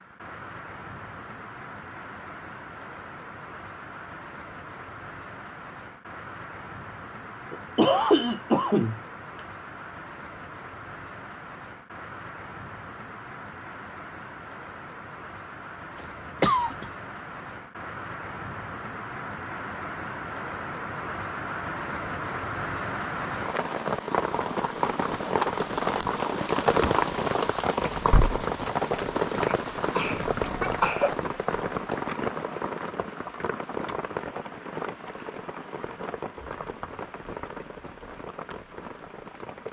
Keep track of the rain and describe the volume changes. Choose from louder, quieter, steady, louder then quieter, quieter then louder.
louder then quieter.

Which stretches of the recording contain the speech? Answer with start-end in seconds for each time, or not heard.
not heard.